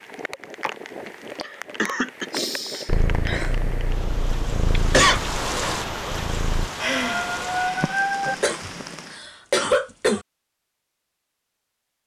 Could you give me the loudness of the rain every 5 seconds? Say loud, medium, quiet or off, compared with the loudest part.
medium, loud, off.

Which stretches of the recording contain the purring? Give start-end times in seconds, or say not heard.
2.9-6.7.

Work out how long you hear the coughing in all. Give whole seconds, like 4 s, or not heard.
4 s.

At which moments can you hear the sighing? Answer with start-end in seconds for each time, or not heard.
2.3-3.5, 6.8-8.3.